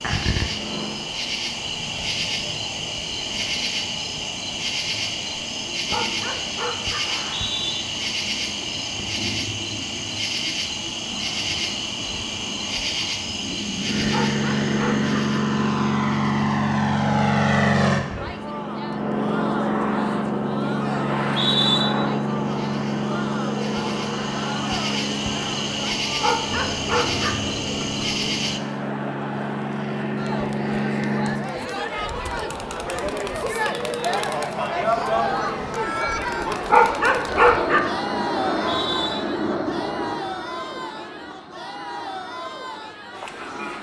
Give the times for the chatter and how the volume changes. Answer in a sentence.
The chatter can be heard from 18.1 to 43.7 s, getting louder then quieter.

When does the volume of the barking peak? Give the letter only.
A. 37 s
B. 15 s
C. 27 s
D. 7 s
A.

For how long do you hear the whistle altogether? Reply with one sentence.
You can hear the whistle for 2 seconds altogether.